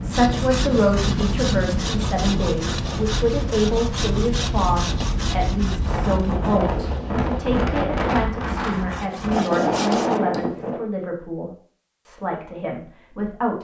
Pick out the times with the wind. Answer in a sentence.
You can hear the wind from 0.0 to 10.8 s.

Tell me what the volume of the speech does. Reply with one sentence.
The volume of the speech goes down.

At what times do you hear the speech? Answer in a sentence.
You can hear the speech from 0.0 to 13.5 s.